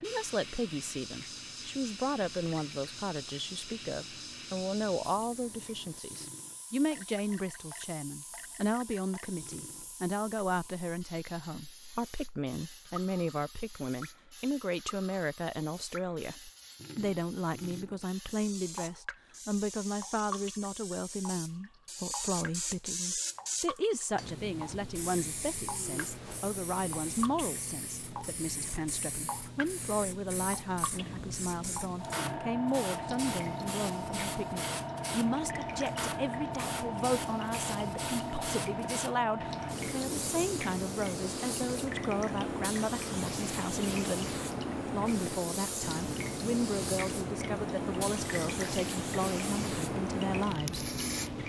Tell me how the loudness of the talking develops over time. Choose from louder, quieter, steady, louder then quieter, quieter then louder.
steady.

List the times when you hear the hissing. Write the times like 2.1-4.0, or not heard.
0.0-51.4.